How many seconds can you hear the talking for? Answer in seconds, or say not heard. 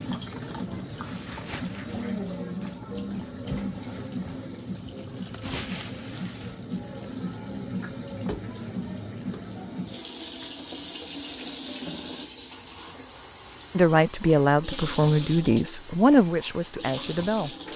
4 s.